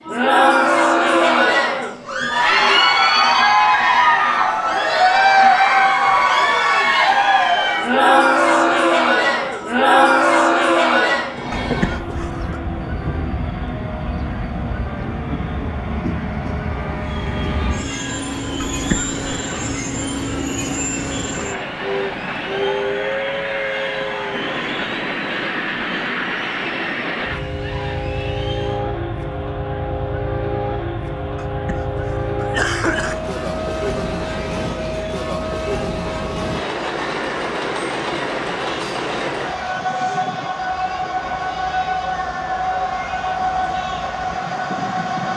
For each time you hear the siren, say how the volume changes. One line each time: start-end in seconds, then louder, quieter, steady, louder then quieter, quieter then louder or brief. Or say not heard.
not heard.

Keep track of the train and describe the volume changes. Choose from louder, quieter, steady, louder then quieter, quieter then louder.
louder.